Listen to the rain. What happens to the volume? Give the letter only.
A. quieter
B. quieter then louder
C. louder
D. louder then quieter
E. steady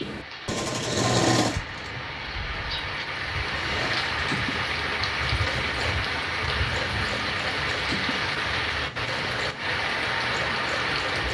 C.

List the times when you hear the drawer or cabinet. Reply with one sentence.
The drawer or cabinet can't be heard in this clip.